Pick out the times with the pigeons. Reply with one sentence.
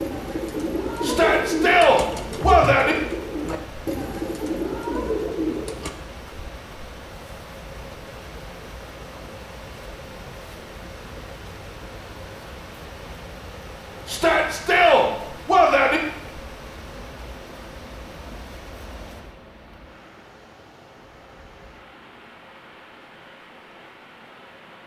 The pigeons can be heard from 0.0 to 5.9 s.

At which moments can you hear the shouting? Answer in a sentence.
You can hear the shouting from 1.0 to 3.0 s and from 14.1 to 16.0 s.